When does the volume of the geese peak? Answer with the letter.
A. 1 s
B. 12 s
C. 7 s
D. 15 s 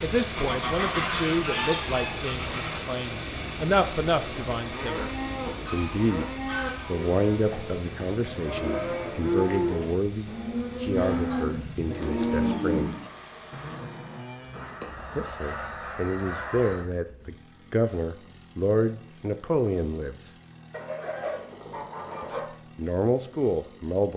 A.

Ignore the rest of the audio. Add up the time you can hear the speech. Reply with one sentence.
The speech can be heard for 19 seconds in total.